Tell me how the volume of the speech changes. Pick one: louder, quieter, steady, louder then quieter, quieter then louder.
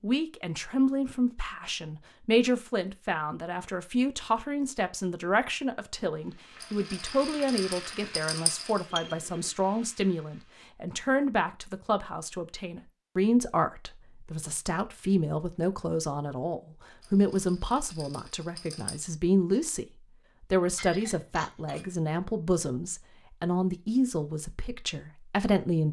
steady.